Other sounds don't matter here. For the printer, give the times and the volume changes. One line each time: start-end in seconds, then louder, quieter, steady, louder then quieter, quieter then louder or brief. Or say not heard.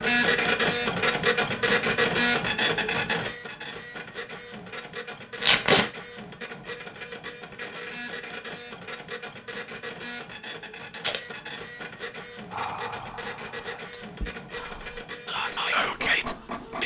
0.0-16.8 quieter.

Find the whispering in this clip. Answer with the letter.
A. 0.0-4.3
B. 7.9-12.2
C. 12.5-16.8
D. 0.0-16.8
C.